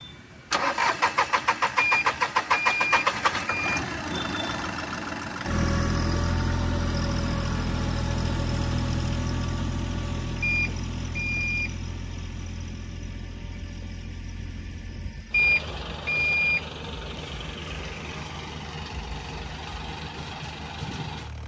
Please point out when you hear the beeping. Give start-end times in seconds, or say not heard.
1.8-3.8, 10.4-11.7, 15.3-16.6.